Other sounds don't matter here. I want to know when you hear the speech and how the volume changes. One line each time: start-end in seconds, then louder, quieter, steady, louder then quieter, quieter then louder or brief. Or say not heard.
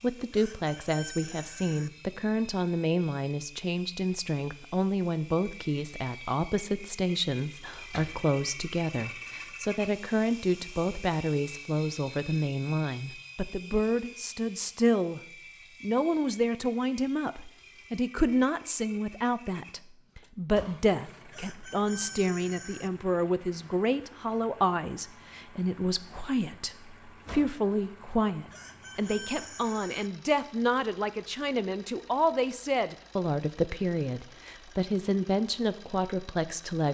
0.0-15.2 steady
15.8-36.9 steady.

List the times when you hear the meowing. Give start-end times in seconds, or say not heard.
not heard.